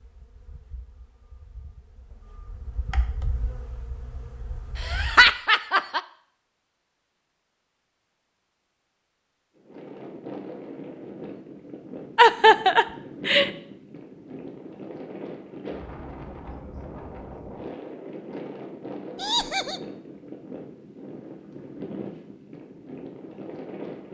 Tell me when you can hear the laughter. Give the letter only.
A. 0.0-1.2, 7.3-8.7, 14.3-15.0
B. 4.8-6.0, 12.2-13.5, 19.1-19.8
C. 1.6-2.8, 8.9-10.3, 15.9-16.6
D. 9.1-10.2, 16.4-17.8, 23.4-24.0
B.